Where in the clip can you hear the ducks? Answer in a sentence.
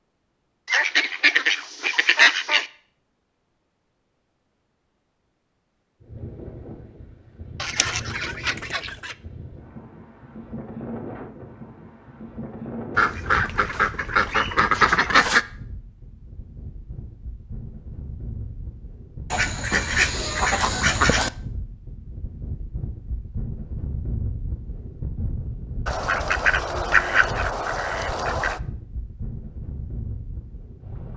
The ducks can be heard from 0.7 to 2.7 s, from 7.6 to 9.2 s, from 12.9 to 15.4 s, from 19.3 to 21.3 s and from 25.9 to 28.6 s.